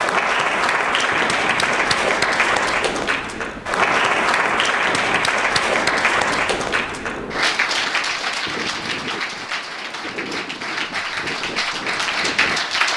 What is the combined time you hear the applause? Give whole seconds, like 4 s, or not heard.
13 s.